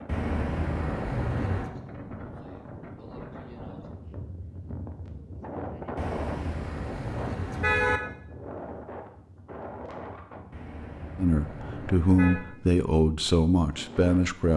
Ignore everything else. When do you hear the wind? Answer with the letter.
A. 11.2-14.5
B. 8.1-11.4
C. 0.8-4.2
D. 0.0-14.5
D.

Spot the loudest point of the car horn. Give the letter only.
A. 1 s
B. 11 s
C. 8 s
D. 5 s
C.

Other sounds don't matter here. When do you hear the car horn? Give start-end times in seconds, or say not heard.
0.1-1.7, 6.0-8.0, 10.5-12.4.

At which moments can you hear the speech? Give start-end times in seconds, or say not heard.
11.2-14.5.